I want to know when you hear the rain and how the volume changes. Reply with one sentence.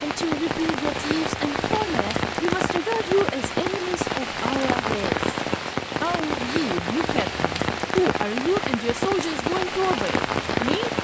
You can hear the rain from 0.0 to 10.9 s, at a steady volume.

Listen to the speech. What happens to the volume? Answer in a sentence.
The volume of the speech stays about the same.